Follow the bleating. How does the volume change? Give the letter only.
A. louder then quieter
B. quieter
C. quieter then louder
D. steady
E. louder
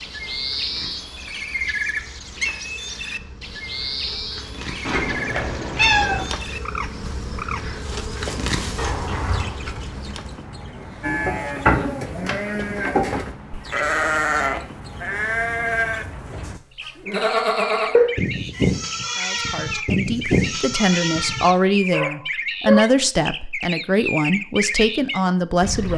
D.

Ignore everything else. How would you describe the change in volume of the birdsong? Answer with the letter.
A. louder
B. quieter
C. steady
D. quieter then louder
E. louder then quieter
D.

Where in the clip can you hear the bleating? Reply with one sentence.
You can hear the bleating from 11.0 to 21.6 s.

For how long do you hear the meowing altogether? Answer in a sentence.
You can hear the meowing for 3 seconds altogether.